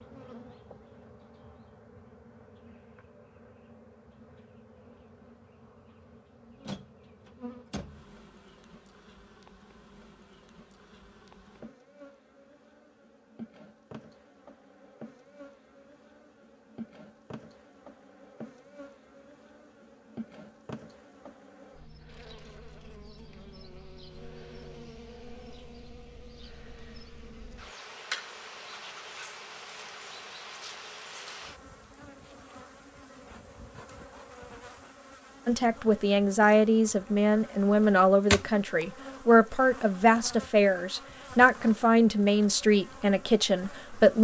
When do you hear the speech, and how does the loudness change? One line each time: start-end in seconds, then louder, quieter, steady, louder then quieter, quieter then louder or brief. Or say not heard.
35.5-44.2 steady.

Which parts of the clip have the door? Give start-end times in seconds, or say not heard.
6.7-8.2.